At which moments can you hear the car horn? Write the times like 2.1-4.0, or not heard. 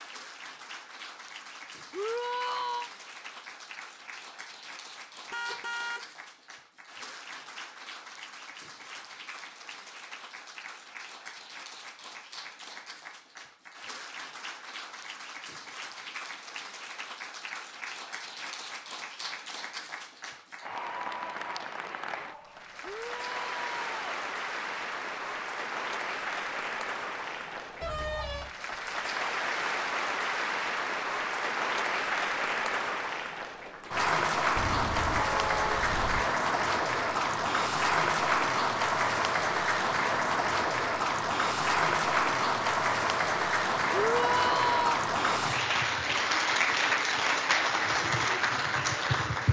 5.3-6.1, 27.8-28.6, 34.5-36.3.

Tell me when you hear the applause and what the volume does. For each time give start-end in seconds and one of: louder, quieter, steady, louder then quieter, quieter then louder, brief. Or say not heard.
0.0-49.4 louder.